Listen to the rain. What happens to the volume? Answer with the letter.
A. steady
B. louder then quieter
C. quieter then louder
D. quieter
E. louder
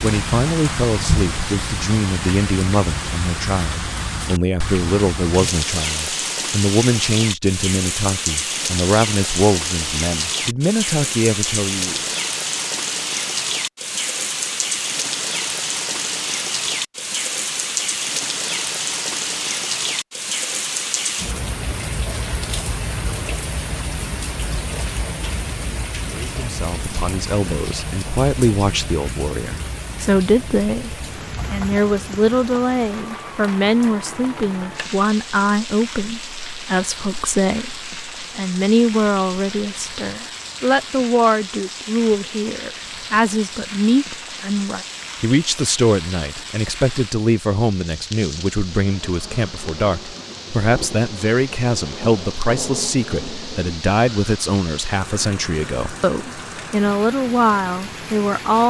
D.